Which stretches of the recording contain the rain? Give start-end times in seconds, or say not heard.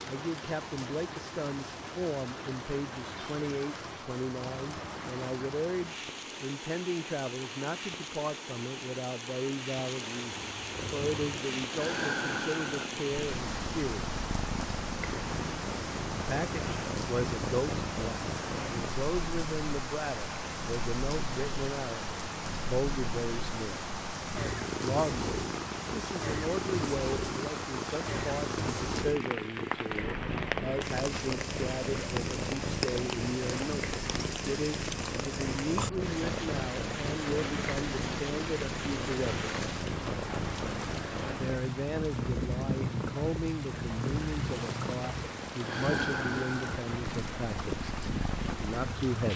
0.0-49.3.